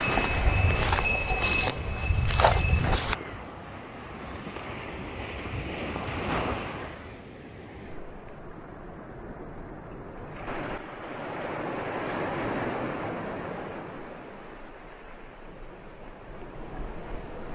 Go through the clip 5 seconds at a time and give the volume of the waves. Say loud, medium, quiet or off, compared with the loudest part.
loud, loud, loud, medium.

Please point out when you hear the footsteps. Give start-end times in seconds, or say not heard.
0.0-3.1.